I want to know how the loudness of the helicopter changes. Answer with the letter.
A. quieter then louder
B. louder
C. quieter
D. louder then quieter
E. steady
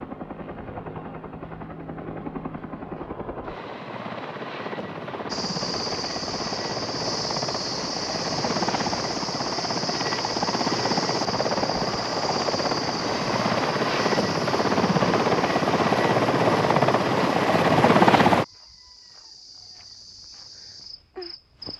B.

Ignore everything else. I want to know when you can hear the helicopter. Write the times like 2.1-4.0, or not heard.
0.0-18.4.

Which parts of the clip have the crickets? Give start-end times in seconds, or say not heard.
5.2-21.7.